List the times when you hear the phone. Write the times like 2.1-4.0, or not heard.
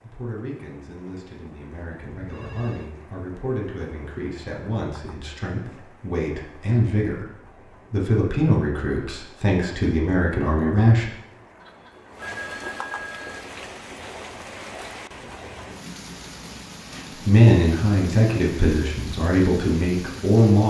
2.0-2.9, 11.6-13.5.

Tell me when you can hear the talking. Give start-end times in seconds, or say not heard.
0.0-11.1, 17.1-20.6.